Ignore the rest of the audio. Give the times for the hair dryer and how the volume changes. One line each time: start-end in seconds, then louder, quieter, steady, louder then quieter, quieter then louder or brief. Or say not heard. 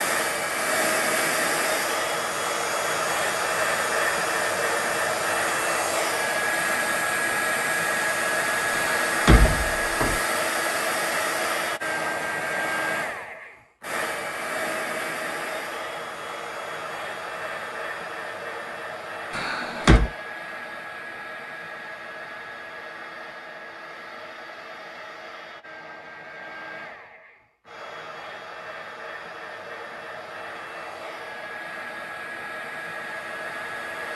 0.0-34.1 quieter.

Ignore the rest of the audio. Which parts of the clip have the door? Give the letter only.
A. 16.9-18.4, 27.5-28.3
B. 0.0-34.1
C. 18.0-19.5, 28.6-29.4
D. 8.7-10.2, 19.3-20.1
D.